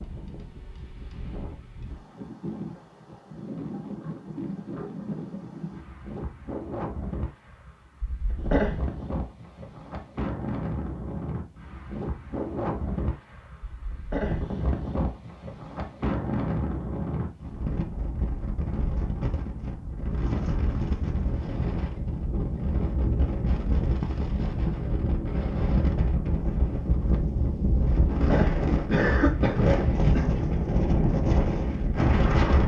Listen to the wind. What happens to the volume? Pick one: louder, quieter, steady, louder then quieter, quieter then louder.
louder.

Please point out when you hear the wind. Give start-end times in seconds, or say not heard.
0.0-32.6.